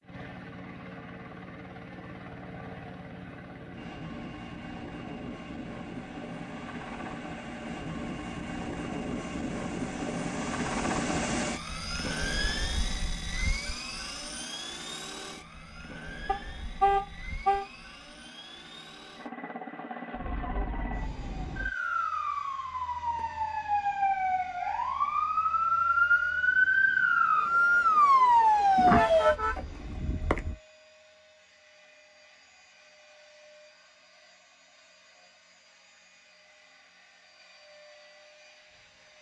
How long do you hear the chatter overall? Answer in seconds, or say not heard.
not heard.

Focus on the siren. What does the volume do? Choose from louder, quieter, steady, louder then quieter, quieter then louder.
louder.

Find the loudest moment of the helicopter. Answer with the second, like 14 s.
11 s.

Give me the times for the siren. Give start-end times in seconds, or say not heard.
20.1-29.4.